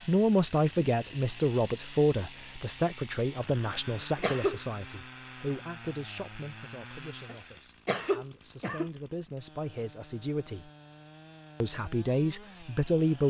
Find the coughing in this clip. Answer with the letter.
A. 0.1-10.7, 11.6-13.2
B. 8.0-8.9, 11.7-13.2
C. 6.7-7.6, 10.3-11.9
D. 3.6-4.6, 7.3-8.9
D.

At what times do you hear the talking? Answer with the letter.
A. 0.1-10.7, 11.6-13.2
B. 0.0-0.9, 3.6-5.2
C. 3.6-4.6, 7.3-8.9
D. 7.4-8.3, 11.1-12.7
A.